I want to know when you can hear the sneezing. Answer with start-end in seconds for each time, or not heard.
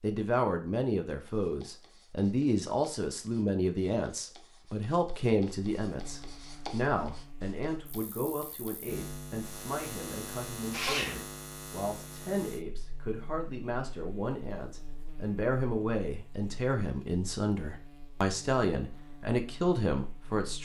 10.7-11.2.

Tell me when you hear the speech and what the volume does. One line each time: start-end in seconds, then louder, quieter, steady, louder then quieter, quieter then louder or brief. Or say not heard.
0.0-20.6 quieter then louder.